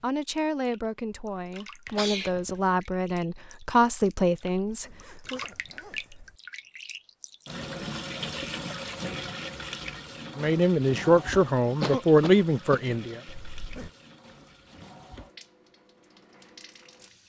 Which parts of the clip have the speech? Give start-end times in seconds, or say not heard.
0.0-5.4, 10.3-13.2.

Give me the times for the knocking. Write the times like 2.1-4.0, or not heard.
not heard.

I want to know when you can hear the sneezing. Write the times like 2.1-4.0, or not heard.
1.9-2.6, 11.8-12.9.